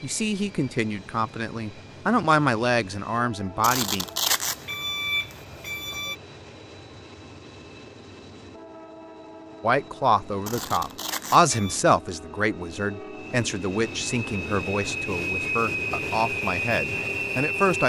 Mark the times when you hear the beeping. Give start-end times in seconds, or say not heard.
3.6-6.2, 10.4-11.8.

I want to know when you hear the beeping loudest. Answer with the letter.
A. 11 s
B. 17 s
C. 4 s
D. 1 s
C.